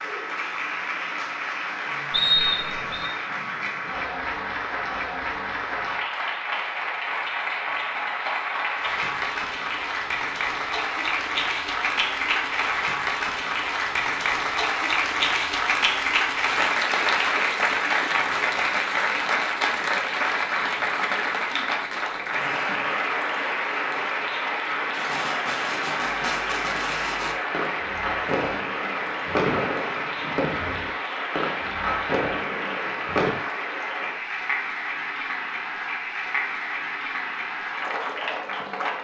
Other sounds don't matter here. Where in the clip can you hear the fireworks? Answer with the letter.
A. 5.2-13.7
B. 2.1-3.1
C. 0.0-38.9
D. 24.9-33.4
D.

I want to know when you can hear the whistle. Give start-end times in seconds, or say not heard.
2.1-3.1.